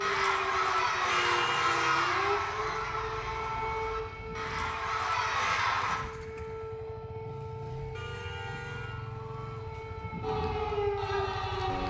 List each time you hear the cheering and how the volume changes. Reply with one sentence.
You can hear the cheering from 0.0 to 6.0 s, getting quieter then louder; and briefly from 10.2 to 11.8 s.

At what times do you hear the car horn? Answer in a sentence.
The car horn can be heard from 1.1 to 2.2 s and from 7.9 to 9.1 s.